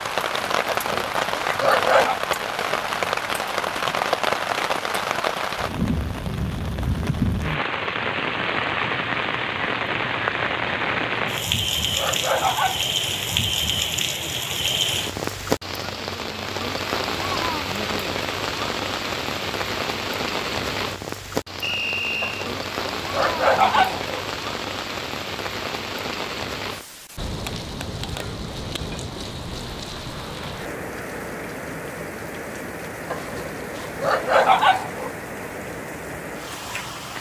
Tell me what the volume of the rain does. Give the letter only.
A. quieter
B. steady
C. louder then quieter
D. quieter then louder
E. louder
A.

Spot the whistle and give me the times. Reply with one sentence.
You can hear the whistle from 21.6 to 22.5 s.